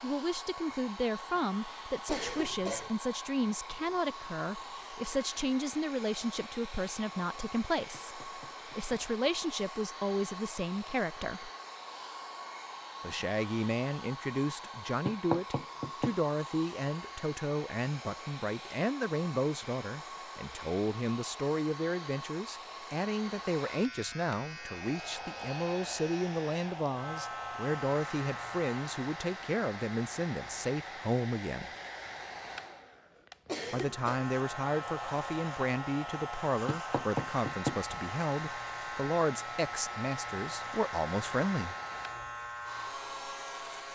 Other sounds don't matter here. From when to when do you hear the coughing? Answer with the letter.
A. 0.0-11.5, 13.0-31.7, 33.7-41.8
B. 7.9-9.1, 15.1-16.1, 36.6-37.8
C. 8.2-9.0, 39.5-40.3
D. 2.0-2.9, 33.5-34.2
D.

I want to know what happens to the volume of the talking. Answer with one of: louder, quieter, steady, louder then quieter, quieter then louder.
steady.